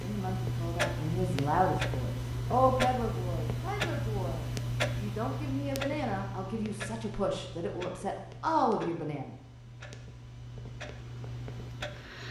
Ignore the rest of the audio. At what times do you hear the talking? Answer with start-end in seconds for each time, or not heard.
0.0-9.3.